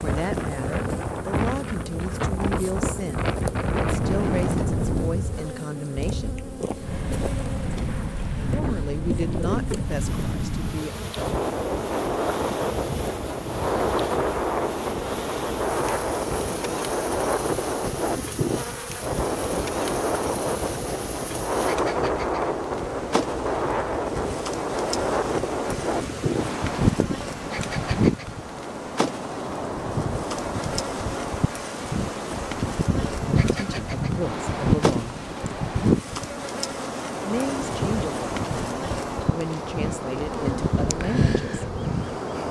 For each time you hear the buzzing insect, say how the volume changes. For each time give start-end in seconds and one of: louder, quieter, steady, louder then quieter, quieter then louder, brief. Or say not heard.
0.0-42.4 steady.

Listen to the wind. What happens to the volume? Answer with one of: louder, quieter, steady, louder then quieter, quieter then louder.
steady.